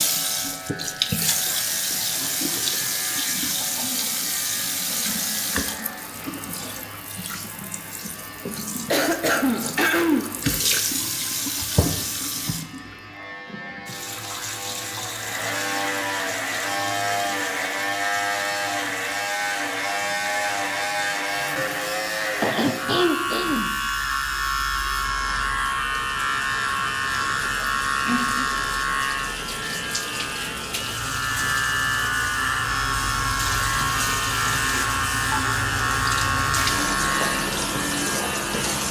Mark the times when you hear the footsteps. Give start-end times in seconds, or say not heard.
not heard.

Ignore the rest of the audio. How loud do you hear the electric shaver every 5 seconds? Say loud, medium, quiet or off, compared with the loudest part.
quiet, quiet, quiet, loud, loud, loud, loud, loud.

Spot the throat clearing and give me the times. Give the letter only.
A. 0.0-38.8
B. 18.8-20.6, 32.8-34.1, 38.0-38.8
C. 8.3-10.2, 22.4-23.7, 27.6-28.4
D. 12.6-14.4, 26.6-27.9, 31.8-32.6
C.